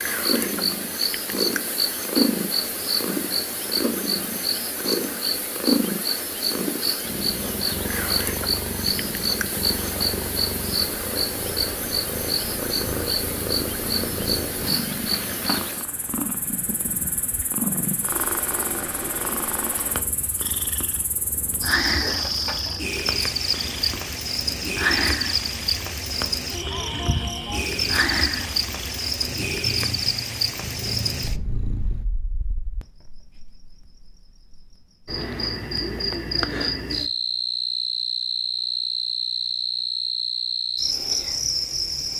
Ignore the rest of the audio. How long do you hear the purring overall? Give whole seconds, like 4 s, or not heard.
32 s.